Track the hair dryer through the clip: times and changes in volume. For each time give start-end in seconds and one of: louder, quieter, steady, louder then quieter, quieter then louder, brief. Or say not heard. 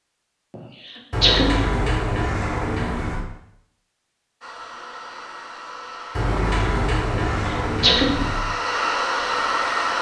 4.4-9.9 louder.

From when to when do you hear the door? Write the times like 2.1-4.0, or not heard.
1.1-3.2, 6.2-8.4.